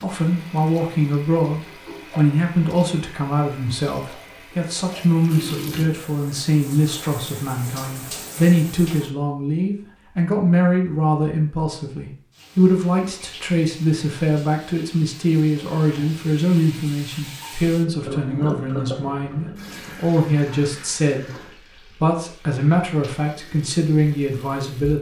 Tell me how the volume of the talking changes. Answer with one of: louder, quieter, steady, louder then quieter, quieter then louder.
steady.